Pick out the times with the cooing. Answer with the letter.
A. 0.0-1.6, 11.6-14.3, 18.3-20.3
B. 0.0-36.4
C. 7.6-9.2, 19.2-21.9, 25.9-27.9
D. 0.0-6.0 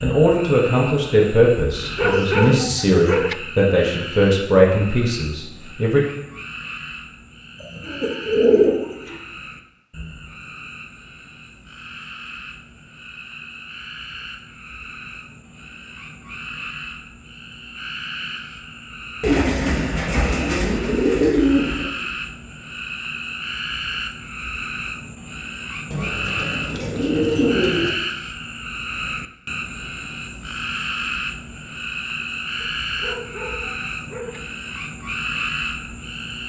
C.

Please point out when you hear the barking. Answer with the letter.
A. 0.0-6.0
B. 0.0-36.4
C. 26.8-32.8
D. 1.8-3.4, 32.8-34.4
D.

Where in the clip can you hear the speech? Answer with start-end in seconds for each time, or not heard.
0.0-6.0.